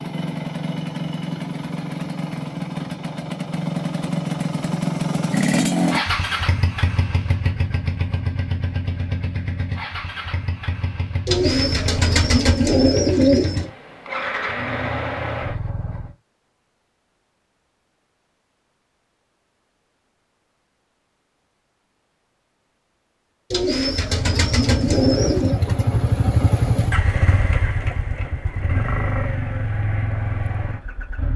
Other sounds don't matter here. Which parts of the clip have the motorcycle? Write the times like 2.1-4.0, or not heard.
0.0-16.1, 23.9-31.3.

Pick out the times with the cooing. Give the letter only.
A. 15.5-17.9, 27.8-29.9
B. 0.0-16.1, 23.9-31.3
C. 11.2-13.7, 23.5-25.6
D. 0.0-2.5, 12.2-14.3
C.